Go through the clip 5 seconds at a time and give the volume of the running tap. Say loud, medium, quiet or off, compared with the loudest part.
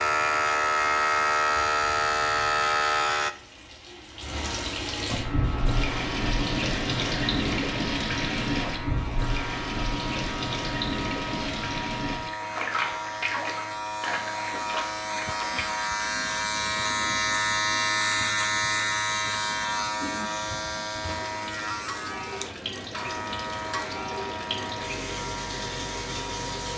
medium, loud, loud, quiet, medium, medium.